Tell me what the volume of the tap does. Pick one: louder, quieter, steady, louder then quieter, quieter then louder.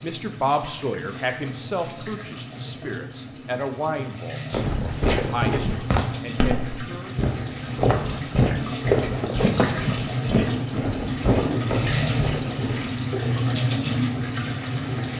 louder.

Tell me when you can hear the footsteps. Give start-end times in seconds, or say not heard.
4.5-12.9.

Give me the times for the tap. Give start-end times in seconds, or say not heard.
0.0-15.1.